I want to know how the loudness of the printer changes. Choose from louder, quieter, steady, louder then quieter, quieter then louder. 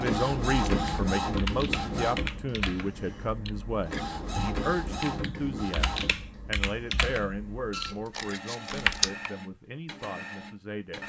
quieter.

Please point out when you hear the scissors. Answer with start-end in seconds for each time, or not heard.
8.1-9.1.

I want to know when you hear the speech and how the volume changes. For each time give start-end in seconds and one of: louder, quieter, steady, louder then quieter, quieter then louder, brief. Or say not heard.
0.0-11.0 quieter.